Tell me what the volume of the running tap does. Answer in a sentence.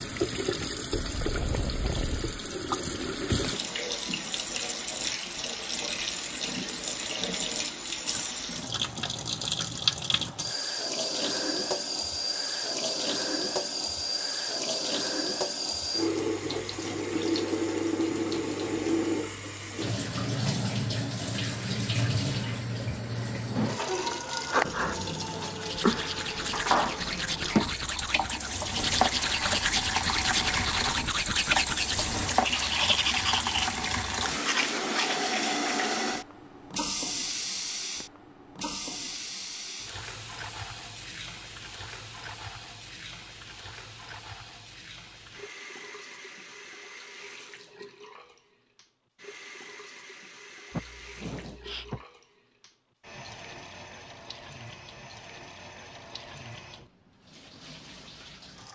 The volume of the running tap goes down.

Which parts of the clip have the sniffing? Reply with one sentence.
You can hear the sniffing from 50.7 to 52.0 s.